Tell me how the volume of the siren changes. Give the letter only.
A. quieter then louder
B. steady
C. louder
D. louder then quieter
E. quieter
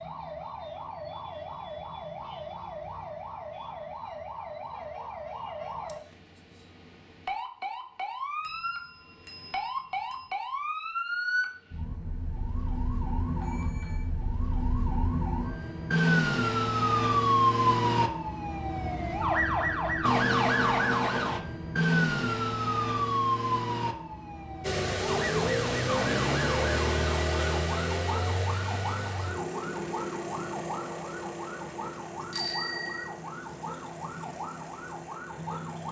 D.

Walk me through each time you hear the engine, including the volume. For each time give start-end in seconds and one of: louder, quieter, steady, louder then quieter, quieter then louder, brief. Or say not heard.
24.6-35.8 quieter.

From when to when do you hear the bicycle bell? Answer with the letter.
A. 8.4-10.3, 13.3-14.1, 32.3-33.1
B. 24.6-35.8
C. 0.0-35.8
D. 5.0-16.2
A.